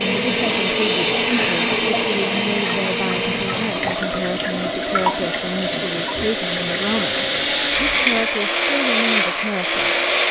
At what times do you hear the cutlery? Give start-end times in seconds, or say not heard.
not heard.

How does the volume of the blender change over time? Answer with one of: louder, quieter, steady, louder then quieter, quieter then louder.
quieter then louder.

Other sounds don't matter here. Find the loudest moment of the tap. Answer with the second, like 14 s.
5 s.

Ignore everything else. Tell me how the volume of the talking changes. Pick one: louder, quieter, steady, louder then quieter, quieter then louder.
steady.